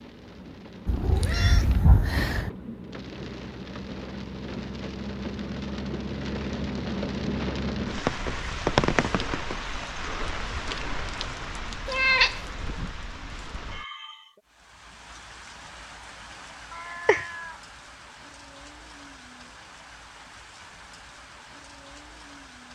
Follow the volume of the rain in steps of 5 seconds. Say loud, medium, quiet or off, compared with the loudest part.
medium, loud, medium, quiet, quiet.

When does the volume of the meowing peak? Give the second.
12 s.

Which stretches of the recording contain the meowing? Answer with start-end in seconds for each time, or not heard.
0.8-2.5, 11.8-12.4, 16.7-17.6.